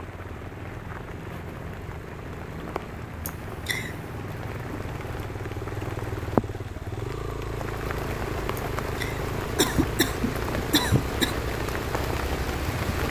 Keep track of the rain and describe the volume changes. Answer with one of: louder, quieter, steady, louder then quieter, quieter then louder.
louder.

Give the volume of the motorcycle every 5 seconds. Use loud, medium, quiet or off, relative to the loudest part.
medium, loud, loud.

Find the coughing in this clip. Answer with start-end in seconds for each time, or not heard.
3.2-4.0, 8.6-11.3.